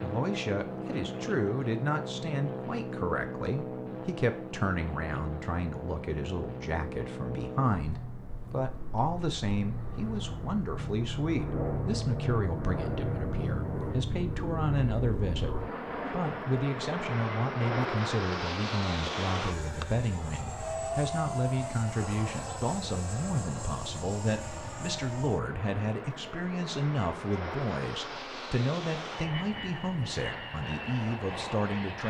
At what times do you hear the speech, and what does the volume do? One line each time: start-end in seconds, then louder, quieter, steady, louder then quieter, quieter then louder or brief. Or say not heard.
0.0-32.0 steady.